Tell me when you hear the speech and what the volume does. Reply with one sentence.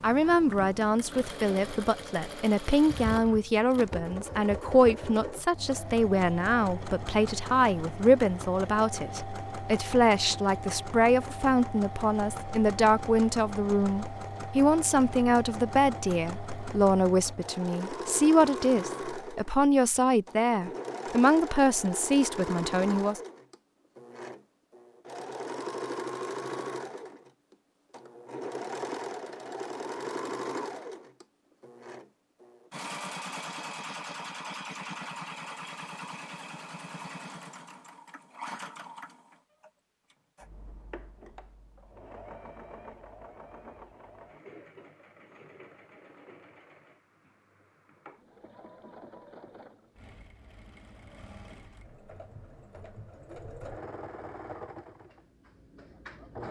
The speech can be heard from 0.0 to 23.2 s, at a steady volume.